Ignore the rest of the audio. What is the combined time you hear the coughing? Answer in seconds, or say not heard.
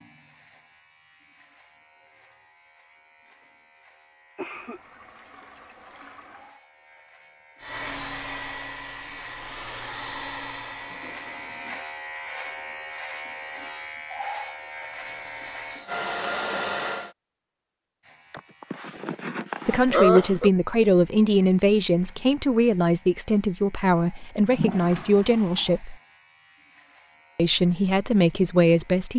3 s.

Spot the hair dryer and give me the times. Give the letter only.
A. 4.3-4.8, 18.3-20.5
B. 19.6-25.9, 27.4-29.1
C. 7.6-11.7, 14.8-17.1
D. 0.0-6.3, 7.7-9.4
C.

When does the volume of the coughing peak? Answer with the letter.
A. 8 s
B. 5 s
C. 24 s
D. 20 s
D.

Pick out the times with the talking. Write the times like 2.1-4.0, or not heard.
19.6-25.9, 27.4-29.1.